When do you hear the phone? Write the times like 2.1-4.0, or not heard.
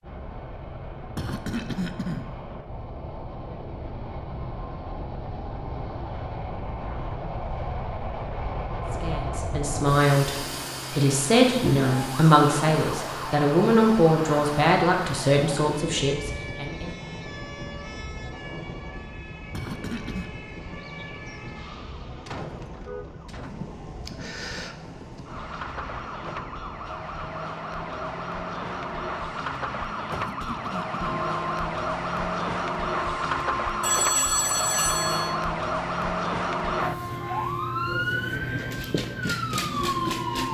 33.8-35.4.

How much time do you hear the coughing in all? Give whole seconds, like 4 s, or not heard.
3 s.